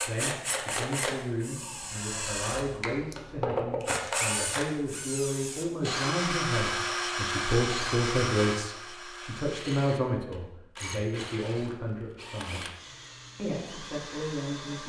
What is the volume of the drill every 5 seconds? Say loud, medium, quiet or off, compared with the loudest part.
loud, loud, medium.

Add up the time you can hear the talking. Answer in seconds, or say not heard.
14 s.